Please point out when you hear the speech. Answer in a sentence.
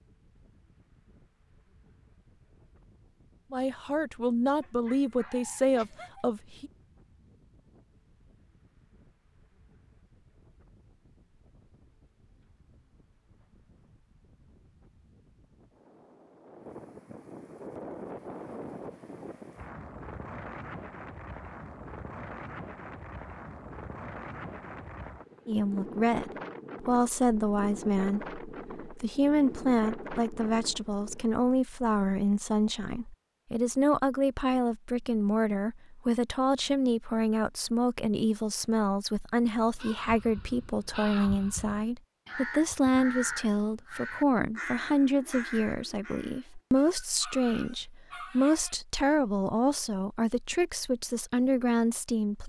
The speech can be heard from 3.5 to 6.7 s and from 25.4 to 52.4 s.